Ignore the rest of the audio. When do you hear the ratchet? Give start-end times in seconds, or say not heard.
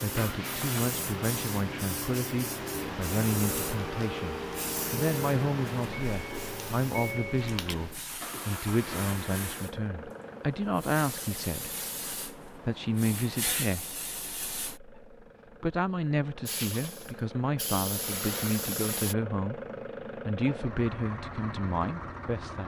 not heard.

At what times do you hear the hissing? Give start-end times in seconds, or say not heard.
0.0-14.8, 16.4-19.1.